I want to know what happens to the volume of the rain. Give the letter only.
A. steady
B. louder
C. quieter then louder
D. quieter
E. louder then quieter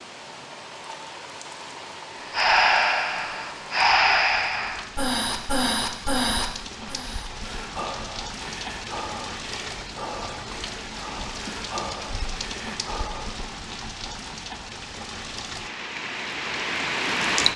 B.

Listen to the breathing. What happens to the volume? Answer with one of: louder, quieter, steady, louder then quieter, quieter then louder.
quieter.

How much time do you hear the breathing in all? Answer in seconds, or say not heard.
11 s.